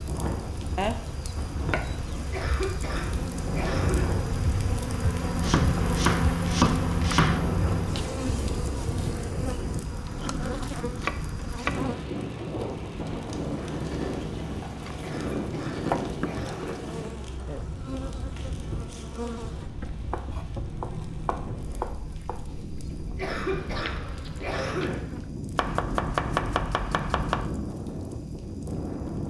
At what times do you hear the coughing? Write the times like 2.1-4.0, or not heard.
2.3-4.1, 15.0-16.8, 23.1-24.9.